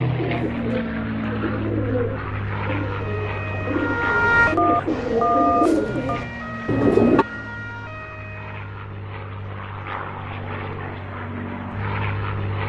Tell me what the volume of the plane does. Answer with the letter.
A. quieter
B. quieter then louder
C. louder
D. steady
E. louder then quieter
B.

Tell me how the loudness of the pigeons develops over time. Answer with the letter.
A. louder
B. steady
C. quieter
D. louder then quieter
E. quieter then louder
A.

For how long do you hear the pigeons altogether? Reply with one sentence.
The pigeons can be heard for 7 seconds in total.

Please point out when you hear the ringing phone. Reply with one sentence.
You can hear the ringing phone from 4.5 to 6.2 s.